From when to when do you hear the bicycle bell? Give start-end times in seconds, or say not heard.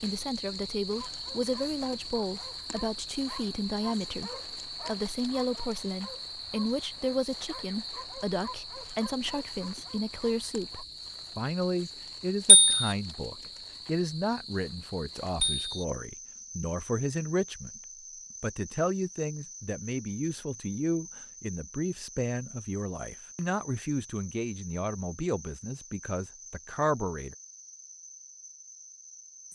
12.4-12.9, 15.4-15.8.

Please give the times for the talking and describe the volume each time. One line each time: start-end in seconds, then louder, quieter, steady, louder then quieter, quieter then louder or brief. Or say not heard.
0.0-17.8 steady
18.4-27.4 steady.